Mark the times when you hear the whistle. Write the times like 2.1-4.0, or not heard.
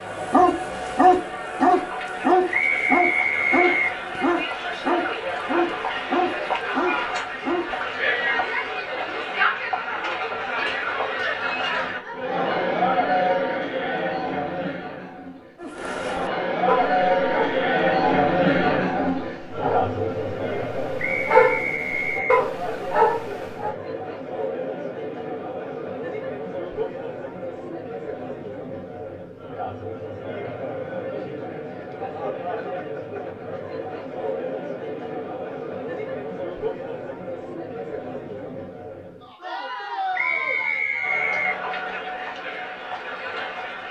2.5-4.0, 20.9-22.4, 40.1-41.6.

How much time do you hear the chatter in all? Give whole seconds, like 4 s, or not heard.
44 s.